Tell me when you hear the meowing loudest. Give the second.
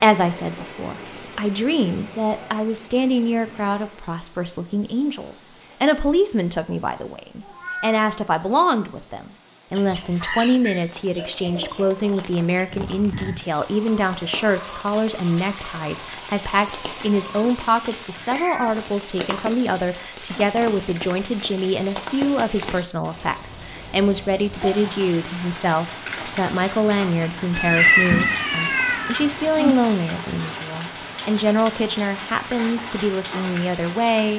28 s.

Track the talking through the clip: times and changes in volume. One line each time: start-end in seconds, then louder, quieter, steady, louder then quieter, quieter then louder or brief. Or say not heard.
0.0-34.3 steady.